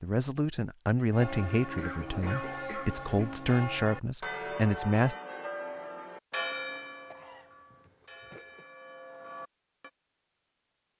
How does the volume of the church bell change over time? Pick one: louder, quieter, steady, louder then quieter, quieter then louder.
quieter.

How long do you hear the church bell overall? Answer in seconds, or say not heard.
9 s.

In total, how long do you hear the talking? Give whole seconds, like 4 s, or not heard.
5 s.